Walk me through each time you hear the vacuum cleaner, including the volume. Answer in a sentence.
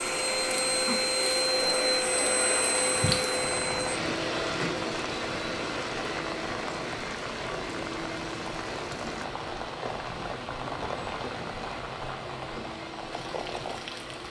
The vacuum cleaner can be heard from 0.0 to 14.2 s, getting quieter.